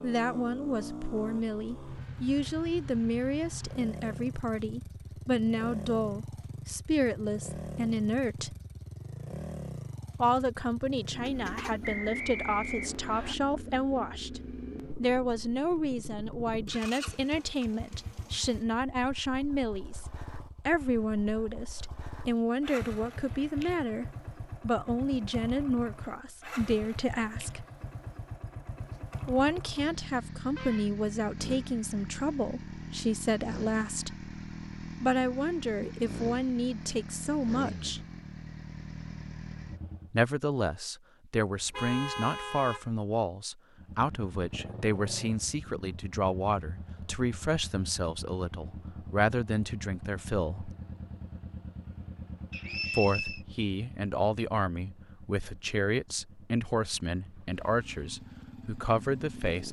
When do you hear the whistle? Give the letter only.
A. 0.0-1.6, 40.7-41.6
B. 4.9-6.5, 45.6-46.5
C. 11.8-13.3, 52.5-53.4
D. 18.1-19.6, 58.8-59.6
C.